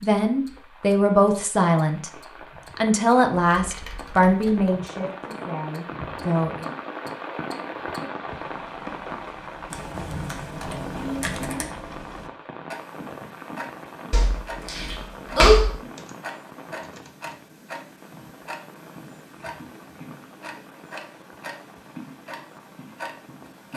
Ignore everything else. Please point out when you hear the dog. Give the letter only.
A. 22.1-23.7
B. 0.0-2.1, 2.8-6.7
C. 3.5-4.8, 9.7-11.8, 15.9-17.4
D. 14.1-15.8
D.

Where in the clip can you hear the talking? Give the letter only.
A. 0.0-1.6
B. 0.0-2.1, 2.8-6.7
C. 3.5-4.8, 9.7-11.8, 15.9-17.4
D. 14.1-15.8
B.